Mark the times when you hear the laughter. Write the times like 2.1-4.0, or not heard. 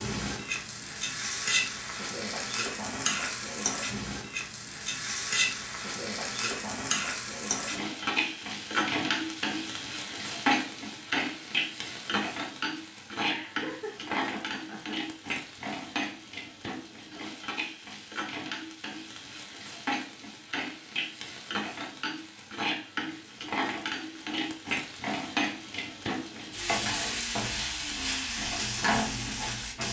13.3-15.0.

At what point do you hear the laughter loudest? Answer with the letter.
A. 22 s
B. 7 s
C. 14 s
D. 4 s
C.